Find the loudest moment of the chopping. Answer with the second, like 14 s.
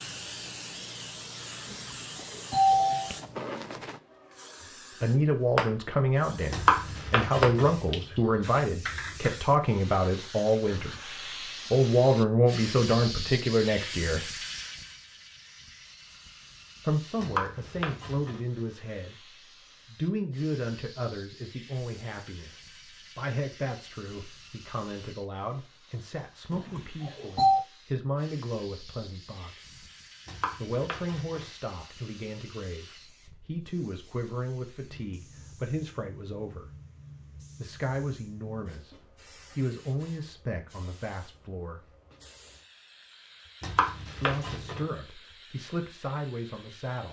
7 s.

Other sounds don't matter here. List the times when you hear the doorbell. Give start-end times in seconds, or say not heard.
1.7-3.1, 26.5-27.6.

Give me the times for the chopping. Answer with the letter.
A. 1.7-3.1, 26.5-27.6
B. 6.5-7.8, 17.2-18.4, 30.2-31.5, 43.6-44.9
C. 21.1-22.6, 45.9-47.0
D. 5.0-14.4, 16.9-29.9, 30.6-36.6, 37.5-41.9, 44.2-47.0
B.